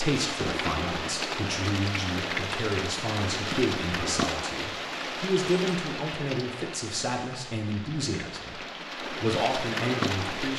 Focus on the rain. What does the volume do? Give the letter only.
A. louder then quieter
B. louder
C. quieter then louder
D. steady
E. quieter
C.